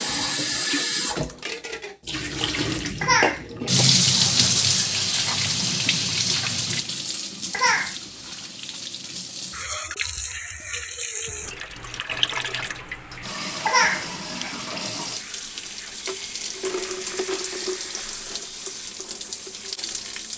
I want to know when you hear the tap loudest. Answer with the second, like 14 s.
4 s.